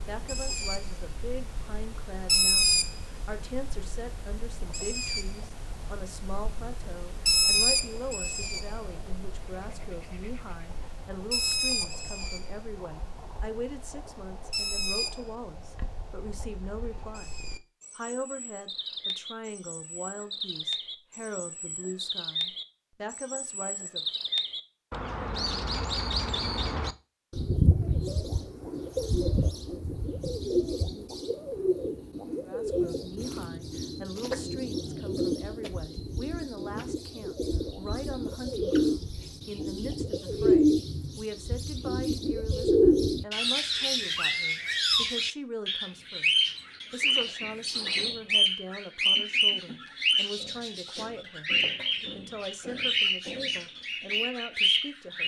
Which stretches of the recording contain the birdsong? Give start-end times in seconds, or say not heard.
0.0-55.2.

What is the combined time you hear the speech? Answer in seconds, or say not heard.
46 s.